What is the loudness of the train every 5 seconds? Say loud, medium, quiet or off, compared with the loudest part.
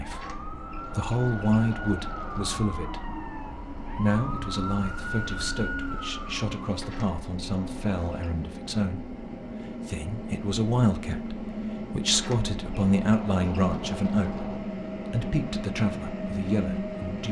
medium, medium, loud, loud.